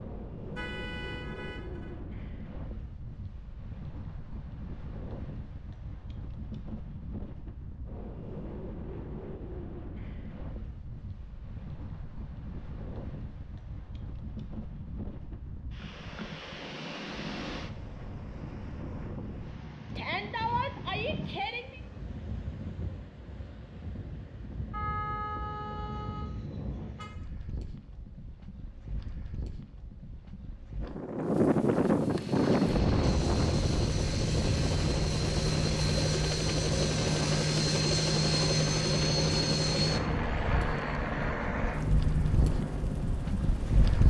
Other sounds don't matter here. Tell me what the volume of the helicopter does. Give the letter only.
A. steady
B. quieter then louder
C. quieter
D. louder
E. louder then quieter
E.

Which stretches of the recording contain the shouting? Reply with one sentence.
The shouting can be heard from 19.9 to 21.8 s.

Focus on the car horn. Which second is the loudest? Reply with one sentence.
The volume of the car horn peaks at 25 seconds.